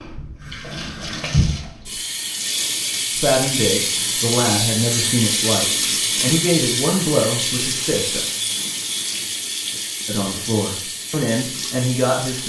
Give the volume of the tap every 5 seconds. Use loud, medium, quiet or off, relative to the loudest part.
loud, loud, medium.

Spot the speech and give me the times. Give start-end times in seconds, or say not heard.
3.1-8.2, 10.1-12.4.